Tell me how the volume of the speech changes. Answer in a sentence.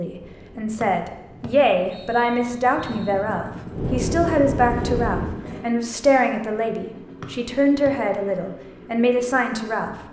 The loudness of the speech stays about the same.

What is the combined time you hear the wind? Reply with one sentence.
You can hear the wind for 5 seconds altogether.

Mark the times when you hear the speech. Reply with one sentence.
You can hear the speech from 0.0 to 9.9 s.